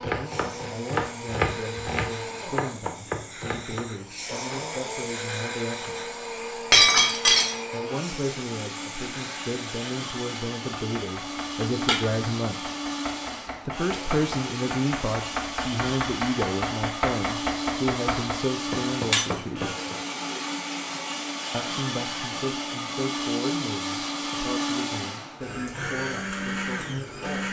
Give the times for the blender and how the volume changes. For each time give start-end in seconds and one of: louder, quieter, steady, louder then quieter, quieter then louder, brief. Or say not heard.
0.0-27.4 louder.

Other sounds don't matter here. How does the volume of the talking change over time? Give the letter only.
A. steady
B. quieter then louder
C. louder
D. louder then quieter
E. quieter
D.